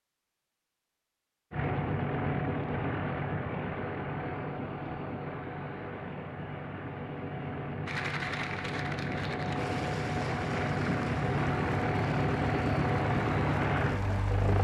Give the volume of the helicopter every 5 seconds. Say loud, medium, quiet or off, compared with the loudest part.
loud, medium, loud.